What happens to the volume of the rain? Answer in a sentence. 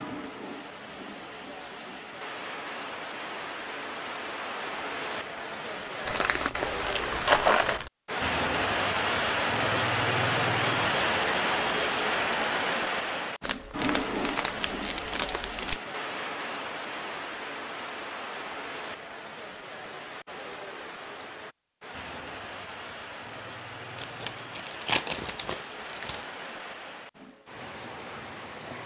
The volume of the rain goes up, then down.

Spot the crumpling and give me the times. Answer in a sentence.
The crumpling can be heard from 6.0 to 7.9 s, from 13.4 to 15.8 s and from 23.9 to 26.2 s.